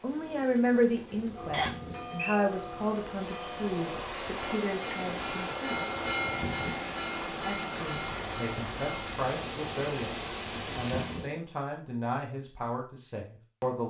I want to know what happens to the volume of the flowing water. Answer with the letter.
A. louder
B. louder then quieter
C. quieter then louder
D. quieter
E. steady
A.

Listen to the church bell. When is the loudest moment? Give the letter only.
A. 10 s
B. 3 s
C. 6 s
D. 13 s
C.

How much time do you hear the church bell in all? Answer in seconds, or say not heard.
8 s.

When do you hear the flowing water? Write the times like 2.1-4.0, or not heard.
0.0-11.3.